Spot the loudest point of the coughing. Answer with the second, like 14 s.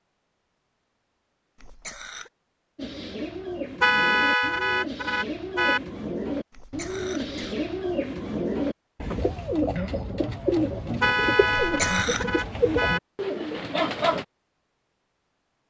12 s.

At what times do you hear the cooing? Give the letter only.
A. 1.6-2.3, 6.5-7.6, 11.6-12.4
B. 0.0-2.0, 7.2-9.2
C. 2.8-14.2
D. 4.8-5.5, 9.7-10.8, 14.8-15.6
C.